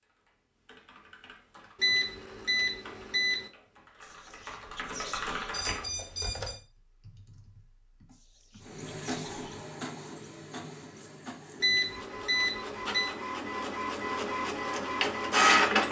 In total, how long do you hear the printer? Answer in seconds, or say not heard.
7 s.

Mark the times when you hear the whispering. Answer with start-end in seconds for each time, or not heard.
4.0-5.5, 8.1-9.7.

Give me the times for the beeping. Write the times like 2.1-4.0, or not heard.
1.8-3.5, 5.5-6.6, 11.6-13.1.